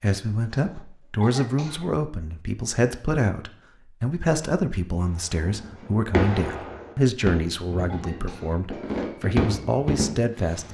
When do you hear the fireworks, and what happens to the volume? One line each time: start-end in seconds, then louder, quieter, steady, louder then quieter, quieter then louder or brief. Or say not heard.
5.2-10.6 quieter then louder.